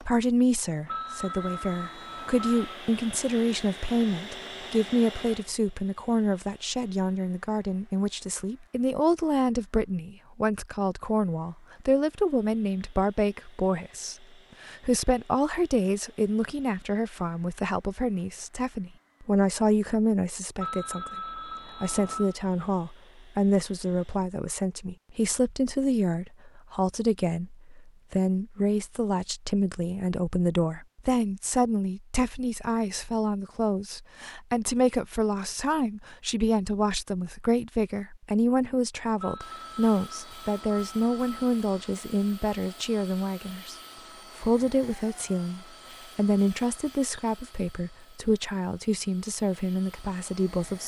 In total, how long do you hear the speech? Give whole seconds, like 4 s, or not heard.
50 s.